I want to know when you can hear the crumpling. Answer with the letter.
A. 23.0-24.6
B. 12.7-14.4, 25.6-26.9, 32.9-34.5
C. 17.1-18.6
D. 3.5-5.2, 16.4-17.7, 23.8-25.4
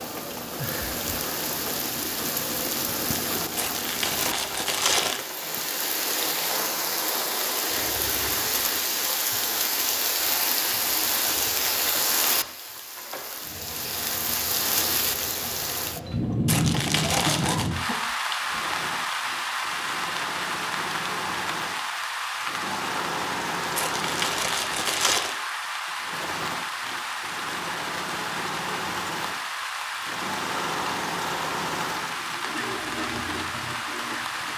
D.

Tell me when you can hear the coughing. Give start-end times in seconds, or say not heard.
17.1-18.6.